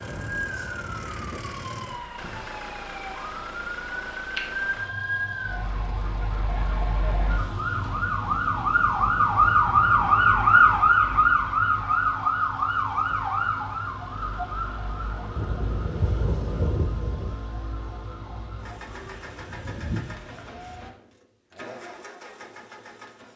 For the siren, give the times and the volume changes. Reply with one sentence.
The siren can be heard from 0.0 to 20.9 s, getting louder then quieter.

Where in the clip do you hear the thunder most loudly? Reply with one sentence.
The loudest moment of the thunder is at 17 seconds.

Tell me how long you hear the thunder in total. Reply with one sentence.
You can hear the thunder for 2 seconds altogether.